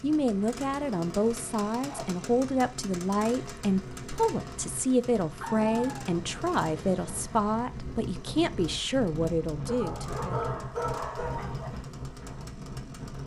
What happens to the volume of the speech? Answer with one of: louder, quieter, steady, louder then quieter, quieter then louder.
steady.